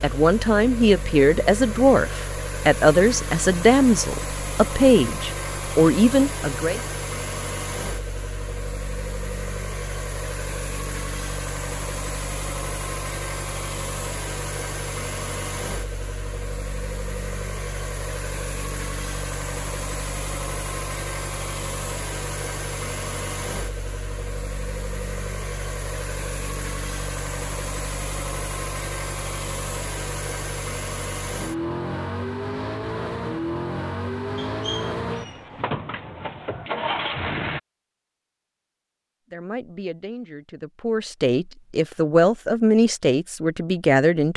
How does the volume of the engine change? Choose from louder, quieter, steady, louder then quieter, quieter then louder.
steady.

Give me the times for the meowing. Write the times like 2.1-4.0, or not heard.
34.4-35.6.